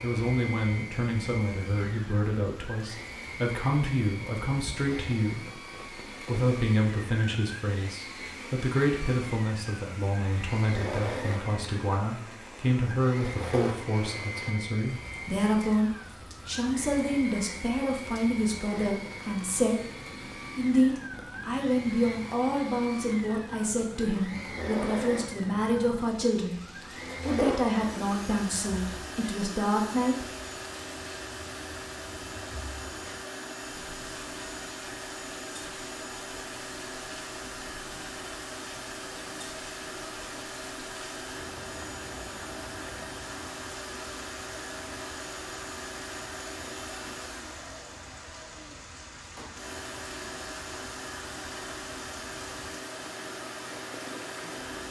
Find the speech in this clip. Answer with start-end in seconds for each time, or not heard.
0.0-5.5, 6.2-19.9, 20.6-26.6, 27.2-30.2.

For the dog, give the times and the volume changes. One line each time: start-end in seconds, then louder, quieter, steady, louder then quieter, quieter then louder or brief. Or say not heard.
not heard.